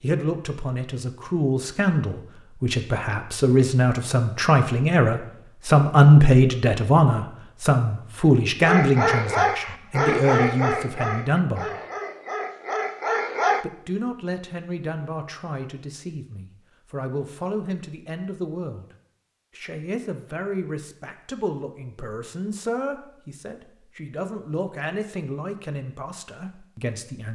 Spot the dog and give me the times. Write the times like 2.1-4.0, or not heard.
8.6-13.7.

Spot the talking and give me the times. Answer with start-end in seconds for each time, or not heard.
0.0-11.7, 13.6-18.9, 19.6-27.3.